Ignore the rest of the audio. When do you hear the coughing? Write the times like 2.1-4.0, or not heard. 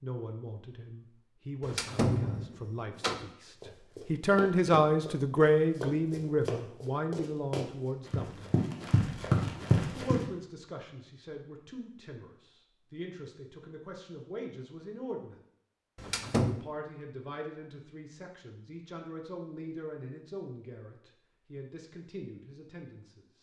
not heard.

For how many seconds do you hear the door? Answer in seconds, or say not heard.
2 s.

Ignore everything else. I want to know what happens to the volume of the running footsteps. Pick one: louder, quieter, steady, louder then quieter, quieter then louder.
louder.